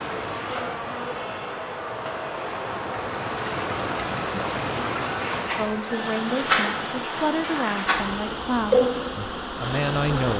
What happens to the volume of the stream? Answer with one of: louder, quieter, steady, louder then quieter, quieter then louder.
louder.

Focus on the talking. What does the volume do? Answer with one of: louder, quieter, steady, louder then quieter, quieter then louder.
steady.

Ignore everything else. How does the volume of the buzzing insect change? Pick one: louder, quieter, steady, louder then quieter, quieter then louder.
louder.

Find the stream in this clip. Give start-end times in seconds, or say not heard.
0.0-10.3.